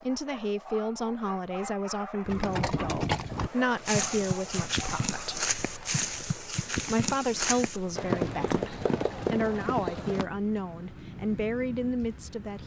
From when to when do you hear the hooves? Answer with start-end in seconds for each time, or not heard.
2.2-10.2.